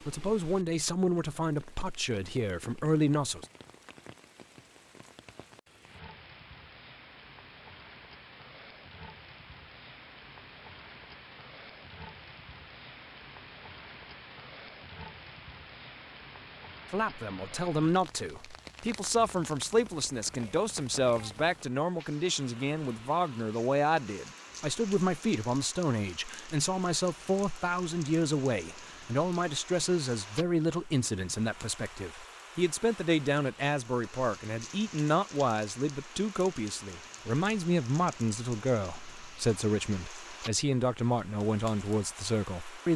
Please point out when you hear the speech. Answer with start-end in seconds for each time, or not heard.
0.1-3.5, 16.9-42.9.